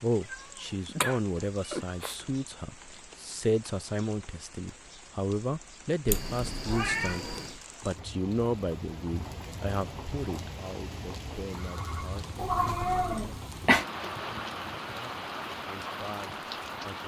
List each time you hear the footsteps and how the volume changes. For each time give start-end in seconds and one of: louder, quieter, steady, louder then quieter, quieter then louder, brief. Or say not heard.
not heard.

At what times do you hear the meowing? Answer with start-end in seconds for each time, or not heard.
0.3-2.1, 6.0-7.6, 12.3-13.8.